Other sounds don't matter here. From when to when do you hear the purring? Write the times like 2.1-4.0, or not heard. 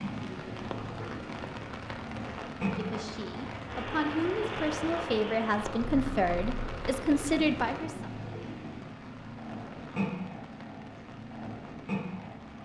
0.0-12.5.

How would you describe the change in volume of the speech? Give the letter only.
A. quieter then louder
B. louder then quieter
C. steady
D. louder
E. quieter
D.